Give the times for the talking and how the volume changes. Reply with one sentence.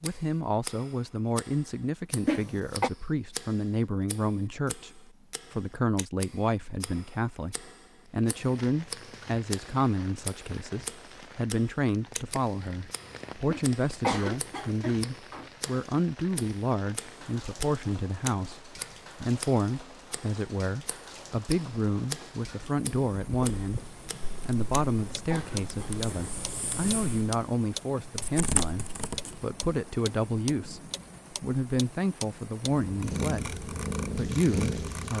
You can hear the talking from 0.0 to 23.9 s, at a steady volume; and from 24.4 to 35.1 s, at a steady volume.